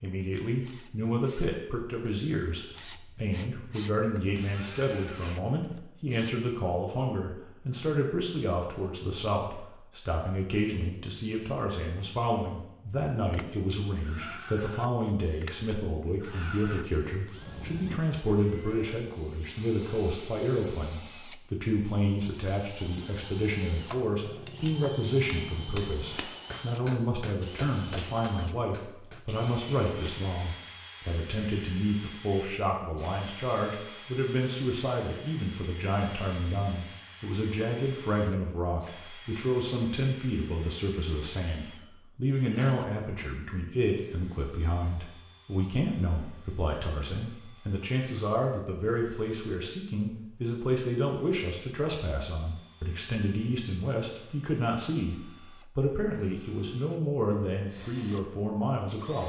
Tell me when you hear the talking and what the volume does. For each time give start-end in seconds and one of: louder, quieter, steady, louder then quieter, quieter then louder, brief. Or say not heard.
0.0-59.2 steady.